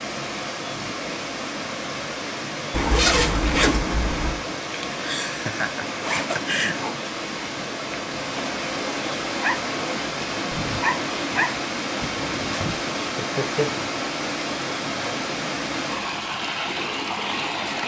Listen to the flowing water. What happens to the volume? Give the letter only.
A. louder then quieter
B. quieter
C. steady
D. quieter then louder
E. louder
C.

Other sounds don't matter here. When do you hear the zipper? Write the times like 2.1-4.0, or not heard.
2.7-4.5, 6.0-7.0, 12.0-12.9.